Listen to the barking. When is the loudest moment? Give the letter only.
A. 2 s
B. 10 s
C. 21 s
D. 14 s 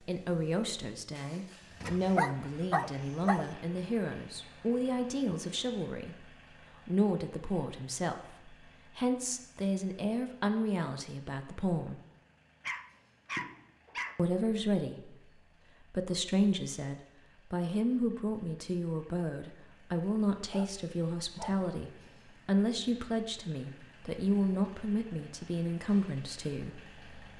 A.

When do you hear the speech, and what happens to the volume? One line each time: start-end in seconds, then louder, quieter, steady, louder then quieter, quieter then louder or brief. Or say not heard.
0.0-11.9 steady
14.2-27.3 steady.